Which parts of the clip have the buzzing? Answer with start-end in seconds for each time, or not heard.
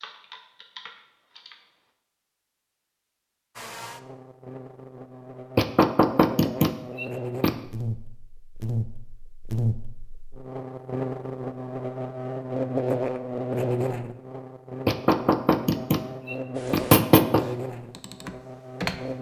3.5-19.1.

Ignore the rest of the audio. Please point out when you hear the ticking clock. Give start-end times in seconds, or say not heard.
not heard.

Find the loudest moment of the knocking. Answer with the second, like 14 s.
17 s.